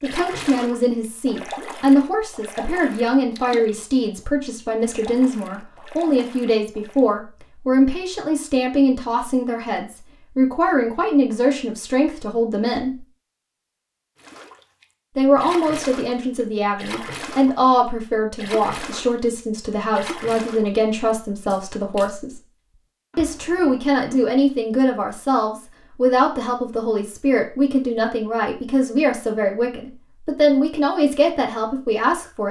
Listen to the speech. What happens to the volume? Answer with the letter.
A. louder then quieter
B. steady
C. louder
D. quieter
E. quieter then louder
B.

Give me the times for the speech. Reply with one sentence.
You can hear the speech from 0.0 to 13.1 s, from 15.2 to 22.4 s and from 23.1 to 32.4 s.